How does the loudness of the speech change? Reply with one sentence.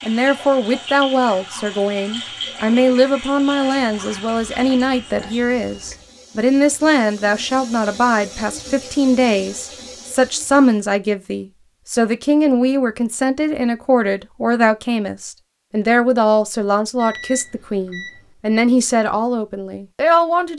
The volume of the speech stays about the same.